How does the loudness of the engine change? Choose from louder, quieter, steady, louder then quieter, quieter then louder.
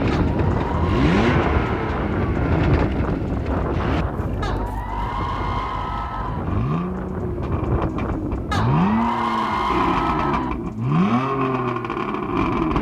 quieter then louder.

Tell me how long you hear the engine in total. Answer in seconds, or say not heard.
13 s.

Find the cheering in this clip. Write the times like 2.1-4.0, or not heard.
0.1-2.0, 4.4-6.5, 8.5-10.5.